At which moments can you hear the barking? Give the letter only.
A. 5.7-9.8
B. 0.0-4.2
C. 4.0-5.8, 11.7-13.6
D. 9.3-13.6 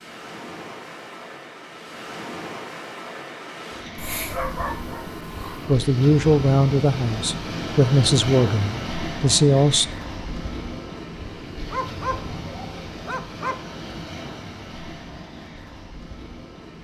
C.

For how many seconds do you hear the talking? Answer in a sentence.
You can hear the talking for 4 seconds altogether.